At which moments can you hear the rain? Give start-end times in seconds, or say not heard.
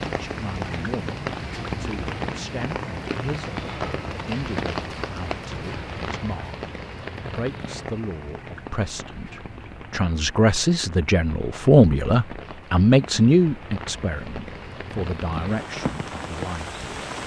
0.0-17.2.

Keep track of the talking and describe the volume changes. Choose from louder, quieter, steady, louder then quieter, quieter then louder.
louder then quieter.